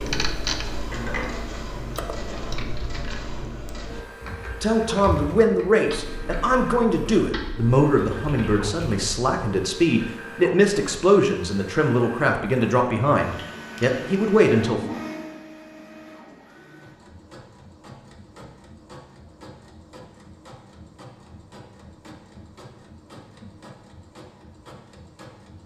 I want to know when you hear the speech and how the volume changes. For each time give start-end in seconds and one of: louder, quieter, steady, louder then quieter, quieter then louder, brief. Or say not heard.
4.6-14.8 steady.